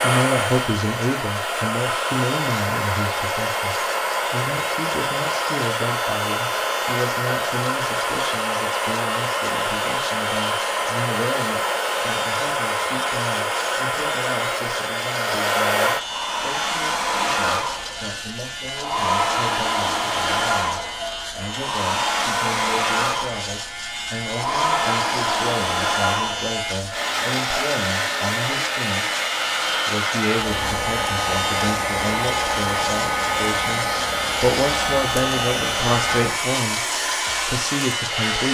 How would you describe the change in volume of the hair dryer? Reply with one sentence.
The loudness of the hair dryer stays about the same.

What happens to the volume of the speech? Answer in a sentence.
The loudness of the speech goes down, then up.